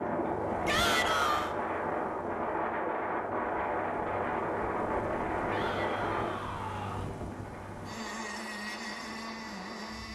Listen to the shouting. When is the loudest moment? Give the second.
1 s.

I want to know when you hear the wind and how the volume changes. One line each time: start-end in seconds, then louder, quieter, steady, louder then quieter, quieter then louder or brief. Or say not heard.
0.0-10.1 quieter.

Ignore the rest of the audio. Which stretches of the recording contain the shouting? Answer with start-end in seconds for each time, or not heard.
0.7-1.6, 5.5-7.1.